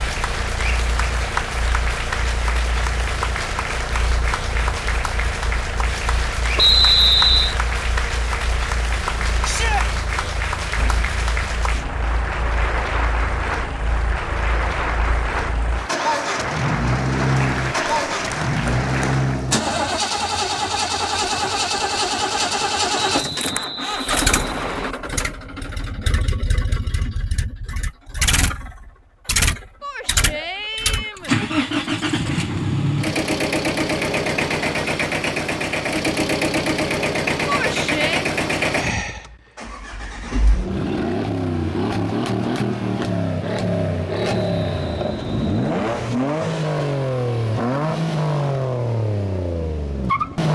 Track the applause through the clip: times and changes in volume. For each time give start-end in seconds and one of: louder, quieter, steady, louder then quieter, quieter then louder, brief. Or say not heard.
0.0-19.4 steady.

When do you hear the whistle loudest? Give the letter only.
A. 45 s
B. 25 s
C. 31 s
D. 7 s
D.